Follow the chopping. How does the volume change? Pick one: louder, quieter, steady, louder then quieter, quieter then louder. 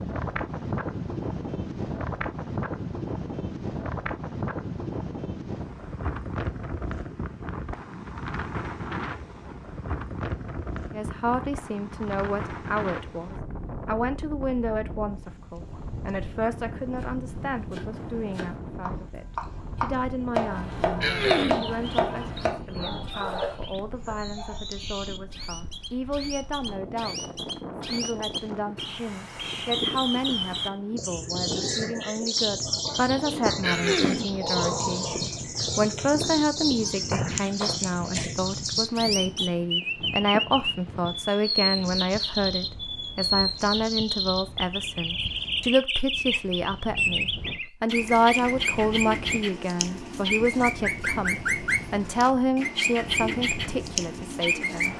louder.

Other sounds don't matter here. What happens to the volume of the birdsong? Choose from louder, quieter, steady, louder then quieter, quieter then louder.
louder.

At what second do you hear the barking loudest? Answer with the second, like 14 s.
23 s.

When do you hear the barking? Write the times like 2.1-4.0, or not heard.
22.7-24.6.